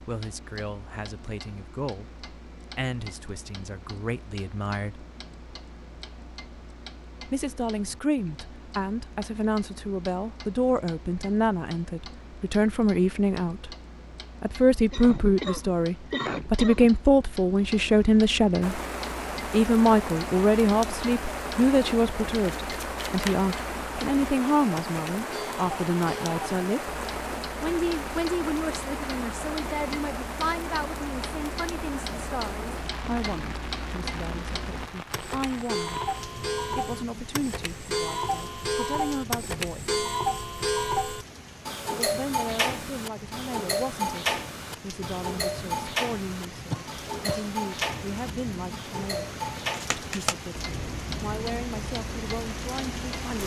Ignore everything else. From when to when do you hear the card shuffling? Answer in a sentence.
You can hear the card shuffling from 22.4 to 23.5 s and from 49.7 to 50.4 s.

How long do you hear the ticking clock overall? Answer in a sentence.
You can hear the ticking clock for 53 seconds altogether.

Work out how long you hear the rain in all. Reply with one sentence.
You can hear the rain for 35 seconds altogether.